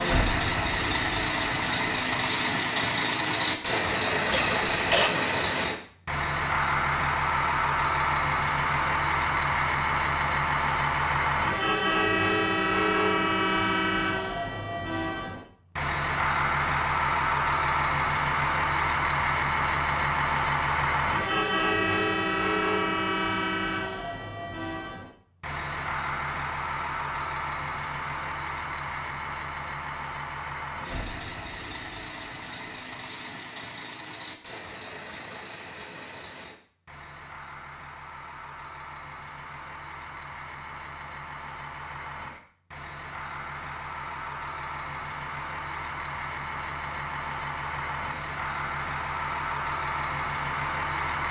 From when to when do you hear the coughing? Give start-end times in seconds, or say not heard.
4.3-5.1.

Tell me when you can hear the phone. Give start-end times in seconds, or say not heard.
not heard.